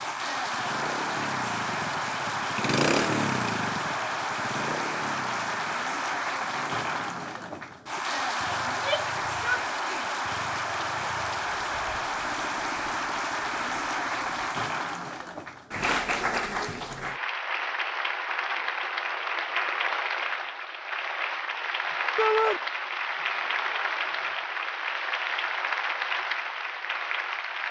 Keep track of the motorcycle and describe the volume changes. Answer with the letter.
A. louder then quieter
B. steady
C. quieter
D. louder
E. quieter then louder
C.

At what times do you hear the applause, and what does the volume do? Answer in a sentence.
You can hear the applause from 0.0 to 27.6 s, at a steady volume.